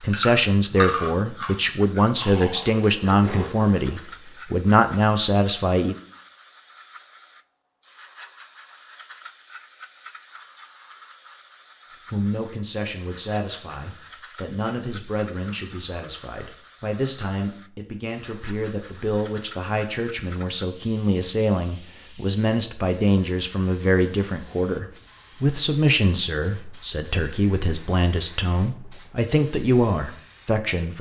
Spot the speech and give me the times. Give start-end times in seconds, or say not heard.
0.0-6.0, 12.1-30.9.